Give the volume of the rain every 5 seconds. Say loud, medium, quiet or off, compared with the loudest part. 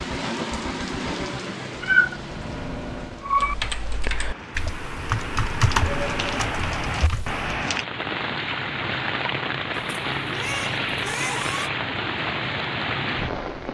medium, loud, loud.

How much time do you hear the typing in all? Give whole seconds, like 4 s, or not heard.
4 s.